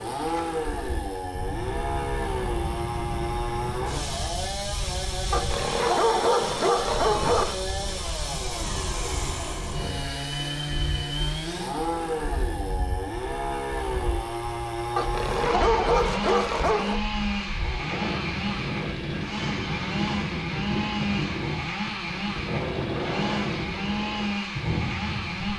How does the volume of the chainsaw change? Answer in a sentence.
The loudness of the chainsaw stays about the same.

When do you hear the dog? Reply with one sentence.
You can hear the dog from 5.3 to 7.5 s and from 14.9 to 17.0 s.